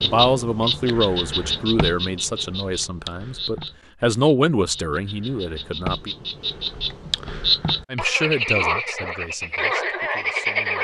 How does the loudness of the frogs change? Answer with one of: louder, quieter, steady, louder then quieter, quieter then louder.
quieter then louder.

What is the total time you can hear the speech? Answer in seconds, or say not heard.
9 s.